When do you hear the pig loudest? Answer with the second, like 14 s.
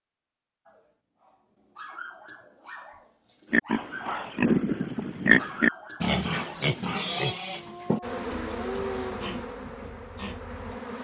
5 s.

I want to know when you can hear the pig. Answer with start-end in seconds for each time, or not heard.
3.5-10.8.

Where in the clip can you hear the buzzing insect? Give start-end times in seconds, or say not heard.
8.0-10.9.